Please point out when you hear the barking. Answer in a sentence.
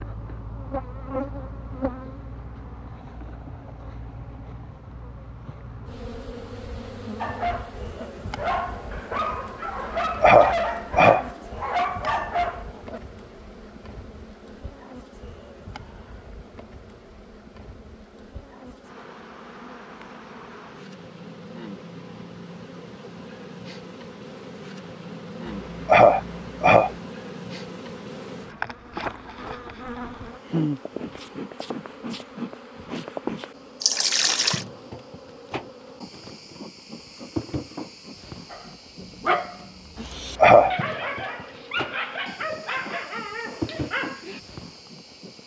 The barking can be heard from 7.2 to 13.0 s and from 38.5 to 44.4 s.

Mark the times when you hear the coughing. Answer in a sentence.
The coughing can be heard from 9.8 to 11.2 s, from 25.4 to 26.9 s and from 40.0 to 40.7 s.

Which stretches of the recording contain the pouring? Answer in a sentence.
You can hear the pouring from 33.8 to 34.6 s.